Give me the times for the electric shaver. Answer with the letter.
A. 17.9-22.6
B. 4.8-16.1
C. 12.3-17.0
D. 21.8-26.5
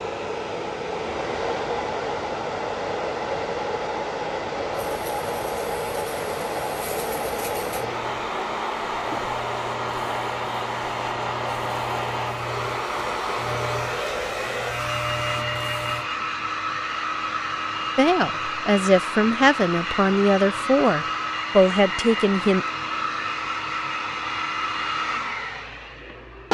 B.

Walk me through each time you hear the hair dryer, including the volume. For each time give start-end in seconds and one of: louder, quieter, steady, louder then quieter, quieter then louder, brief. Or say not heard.
0.0-26.5 steady.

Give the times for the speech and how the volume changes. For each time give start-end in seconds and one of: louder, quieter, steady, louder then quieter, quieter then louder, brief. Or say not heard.
17.9-22.6 steady.